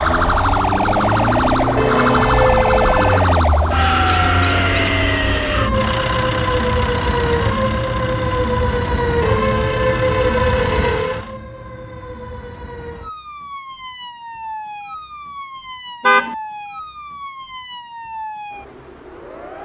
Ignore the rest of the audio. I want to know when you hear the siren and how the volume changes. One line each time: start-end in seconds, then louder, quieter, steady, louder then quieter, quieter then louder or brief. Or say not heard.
0.0-19.6 quieter.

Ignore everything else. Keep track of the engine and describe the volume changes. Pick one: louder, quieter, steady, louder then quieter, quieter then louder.
quieter.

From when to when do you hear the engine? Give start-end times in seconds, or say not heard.
0.0-11.3.